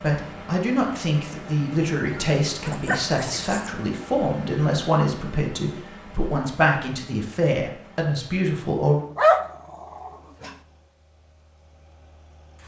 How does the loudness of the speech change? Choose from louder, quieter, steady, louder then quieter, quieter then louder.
steady.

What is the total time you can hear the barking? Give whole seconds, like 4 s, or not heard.
3 s.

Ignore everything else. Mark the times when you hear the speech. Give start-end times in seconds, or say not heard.
0.0-9.1.